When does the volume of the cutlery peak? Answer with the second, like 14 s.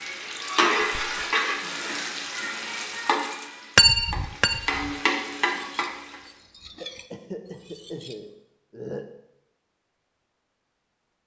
4 s.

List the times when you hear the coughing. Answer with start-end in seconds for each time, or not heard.
0.8-1.4, 6.8-9.1.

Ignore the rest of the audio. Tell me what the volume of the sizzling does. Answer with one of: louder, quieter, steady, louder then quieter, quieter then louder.
quieter then louder.